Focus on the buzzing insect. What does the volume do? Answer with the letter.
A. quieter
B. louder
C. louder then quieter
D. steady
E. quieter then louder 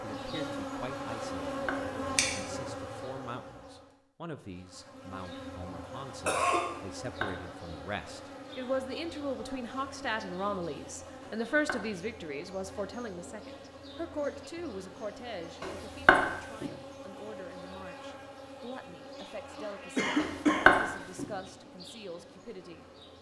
A.